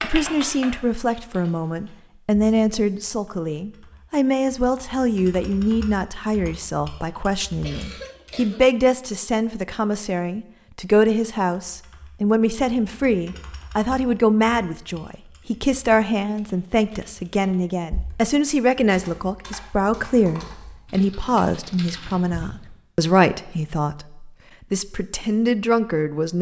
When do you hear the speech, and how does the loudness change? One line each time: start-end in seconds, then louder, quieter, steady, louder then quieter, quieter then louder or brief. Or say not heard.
0.0-26.3 steady.